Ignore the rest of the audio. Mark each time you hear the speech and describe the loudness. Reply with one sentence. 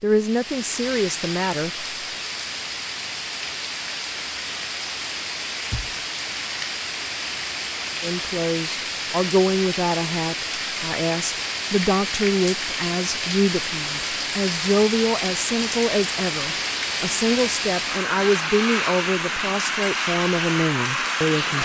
You can hear the speech briefly from 0.0 to 1.9 s; and from 8.0 to 21.6 s, at a steady volume.